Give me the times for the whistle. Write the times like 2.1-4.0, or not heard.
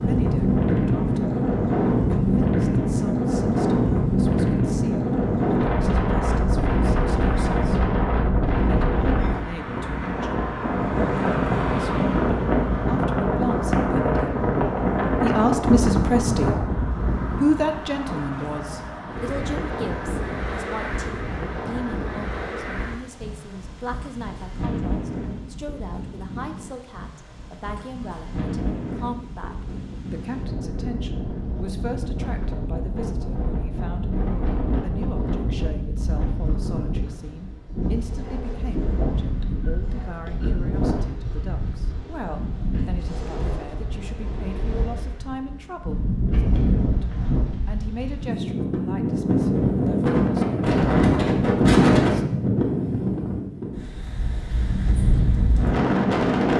not heard.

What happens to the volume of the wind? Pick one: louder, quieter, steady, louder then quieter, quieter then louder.
quieter then louder.